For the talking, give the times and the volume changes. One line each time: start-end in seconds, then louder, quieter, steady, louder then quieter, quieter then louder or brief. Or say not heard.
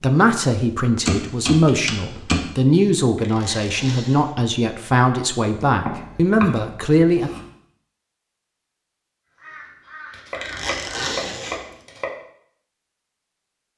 0.0-7.3 steady.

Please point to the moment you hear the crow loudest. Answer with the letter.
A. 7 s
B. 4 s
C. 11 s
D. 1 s
C.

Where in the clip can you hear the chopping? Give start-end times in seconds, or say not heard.
1.1-2.5, 5.7-7.5, 10.1-12.1.